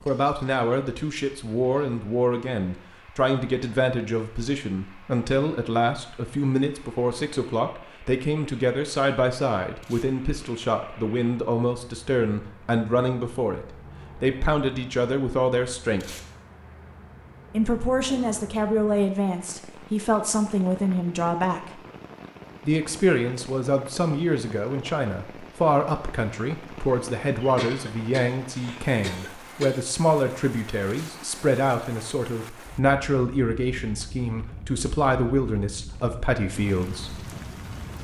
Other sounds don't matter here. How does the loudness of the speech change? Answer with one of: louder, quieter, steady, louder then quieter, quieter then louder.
steady.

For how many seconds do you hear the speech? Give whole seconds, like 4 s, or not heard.
35 s.